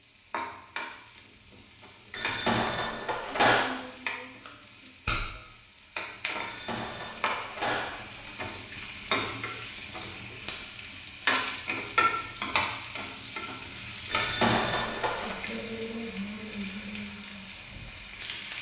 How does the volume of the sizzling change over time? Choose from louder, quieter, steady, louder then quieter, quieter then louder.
louder then quieter.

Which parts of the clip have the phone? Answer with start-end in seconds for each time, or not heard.
2.1-3.7, 6.3-8.3, 14.1-15.3.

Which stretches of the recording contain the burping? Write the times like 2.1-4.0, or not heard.
not heard.